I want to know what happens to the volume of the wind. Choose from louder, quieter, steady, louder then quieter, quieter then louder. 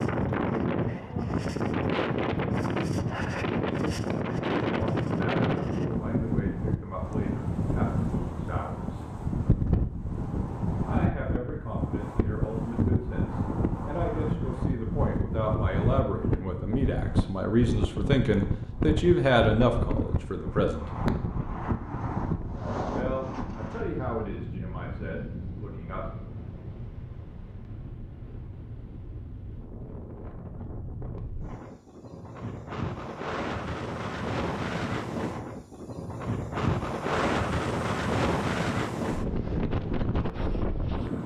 quieter then louder.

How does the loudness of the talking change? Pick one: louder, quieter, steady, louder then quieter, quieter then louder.
louder then quieter.